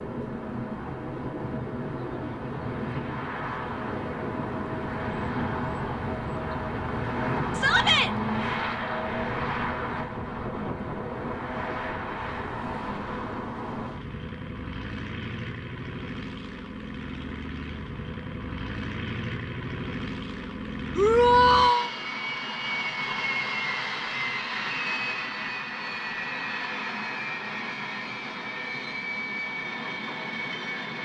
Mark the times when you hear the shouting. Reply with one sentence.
You can hear the shouting from 7.5 to 8.1 s and from 20.9 to 21.9 s.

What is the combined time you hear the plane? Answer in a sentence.
The plane can be heard for 31 seconds in total.